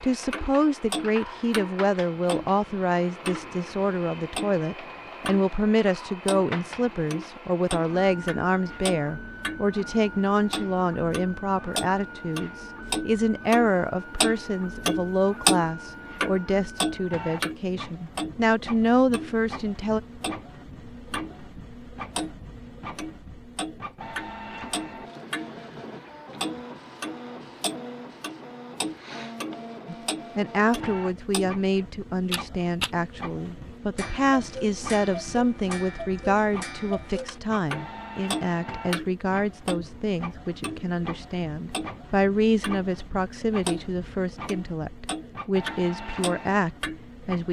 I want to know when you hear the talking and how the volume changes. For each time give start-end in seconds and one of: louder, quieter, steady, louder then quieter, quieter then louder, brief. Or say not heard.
0.0-20.0 steady
29.9-47.4 steady.